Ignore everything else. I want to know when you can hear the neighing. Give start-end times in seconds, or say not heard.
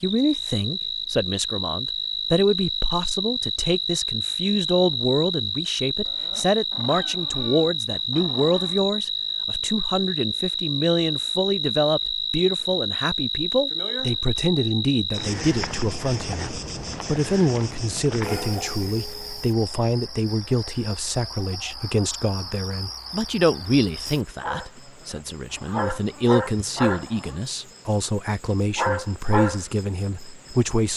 not heard.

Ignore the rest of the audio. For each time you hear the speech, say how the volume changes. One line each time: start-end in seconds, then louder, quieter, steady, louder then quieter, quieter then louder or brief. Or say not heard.
0.0-30.9 steady.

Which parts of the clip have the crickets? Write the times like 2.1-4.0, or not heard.
0.0-30.9.